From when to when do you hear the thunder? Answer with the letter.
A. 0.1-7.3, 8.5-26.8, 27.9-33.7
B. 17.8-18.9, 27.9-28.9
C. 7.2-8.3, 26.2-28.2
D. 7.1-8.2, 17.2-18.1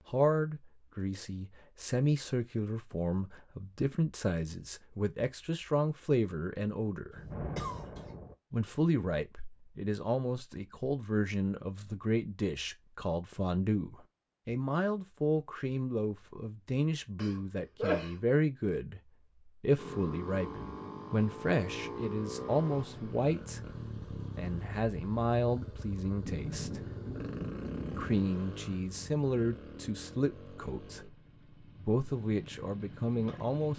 C.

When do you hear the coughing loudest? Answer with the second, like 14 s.
18 s.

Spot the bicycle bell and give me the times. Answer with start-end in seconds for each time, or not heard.
not heard.